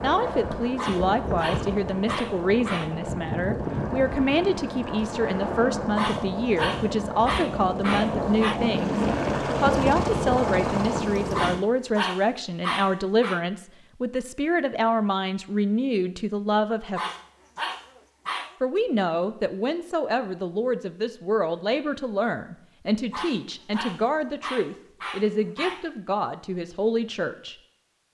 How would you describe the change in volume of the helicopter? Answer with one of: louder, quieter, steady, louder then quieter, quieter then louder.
louder.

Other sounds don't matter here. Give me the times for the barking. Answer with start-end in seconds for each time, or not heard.
0.8-3.0, 6.0-8.6, 11.3-13.4, 16.9-18.6, 23.1-25.9.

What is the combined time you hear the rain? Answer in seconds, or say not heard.
not heard.